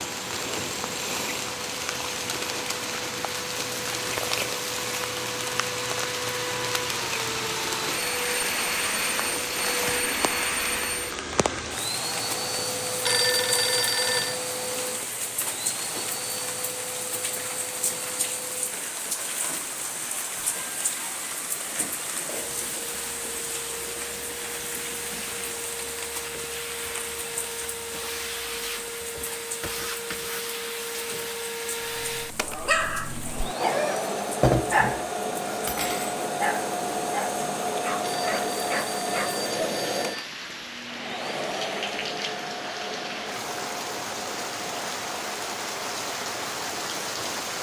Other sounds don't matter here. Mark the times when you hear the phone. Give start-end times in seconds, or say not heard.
13.1-14.4, 38.0-40.2.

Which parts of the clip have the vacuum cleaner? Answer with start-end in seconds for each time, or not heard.
0.0-47.5.